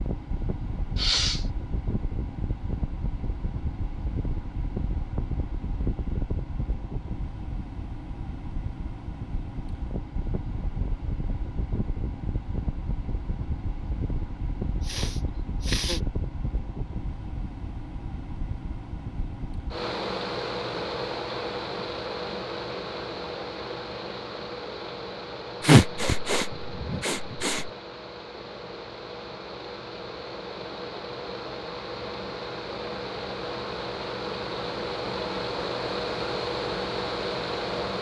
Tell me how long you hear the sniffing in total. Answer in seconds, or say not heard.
4 s.